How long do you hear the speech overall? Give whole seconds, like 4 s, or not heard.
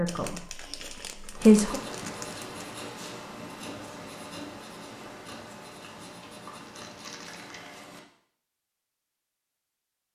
2 s.